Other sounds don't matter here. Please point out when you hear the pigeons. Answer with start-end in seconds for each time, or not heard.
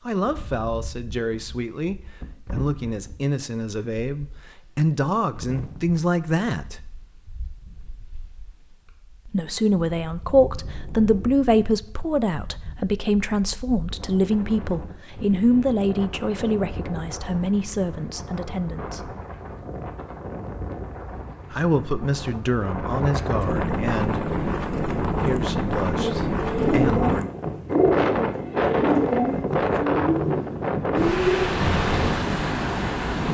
25.8-32.1.